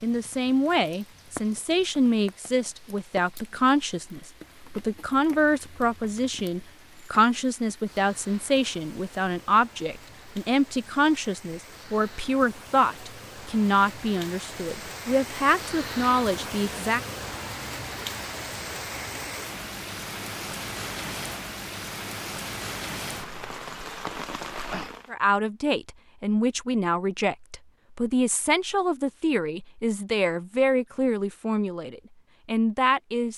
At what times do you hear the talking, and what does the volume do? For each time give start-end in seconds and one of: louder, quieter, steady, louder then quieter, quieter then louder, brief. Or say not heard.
0.0-17.0 steady
25.1-33.3 steady.